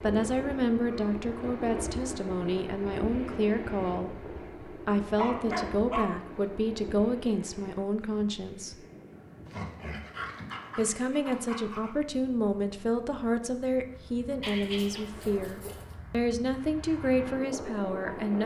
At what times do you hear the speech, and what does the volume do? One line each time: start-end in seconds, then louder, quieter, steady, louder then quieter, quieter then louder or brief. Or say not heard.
0.0-8.8 steady
10.8-18.4 steady.